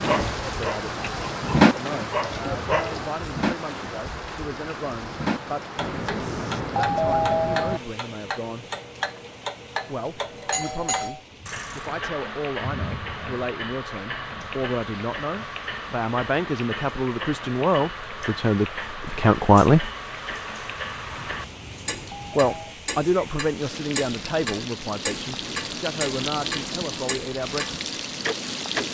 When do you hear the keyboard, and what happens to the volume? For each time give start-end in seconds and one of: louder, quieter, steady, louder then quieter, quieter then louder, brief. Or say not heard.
not heard.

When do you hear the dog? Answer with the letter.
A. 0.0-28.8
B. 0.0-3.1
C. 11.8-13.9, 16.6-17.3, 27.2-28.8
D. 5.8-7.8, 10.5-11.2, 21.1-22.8
B.